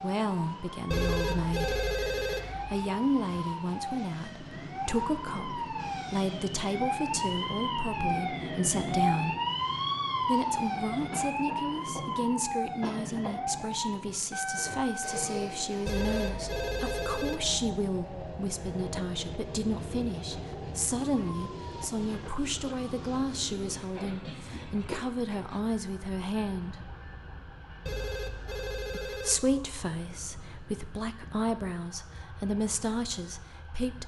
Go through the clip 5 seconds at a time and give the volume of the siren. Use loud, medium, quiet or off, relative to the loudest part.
medium, loud, loud, medium, quiet, quiet, quiet.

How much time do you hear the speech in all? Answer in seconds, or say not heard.
30 s.